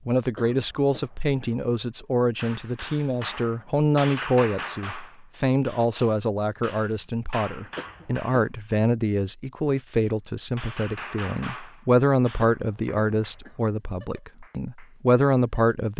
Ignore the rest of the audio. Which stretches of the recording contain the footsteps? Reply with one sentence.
The footsteps can't be heard in this clip.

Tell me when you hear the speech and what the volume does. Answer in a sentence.
The speech can be heard from 0.1 to 15.9 s, at a steady volume.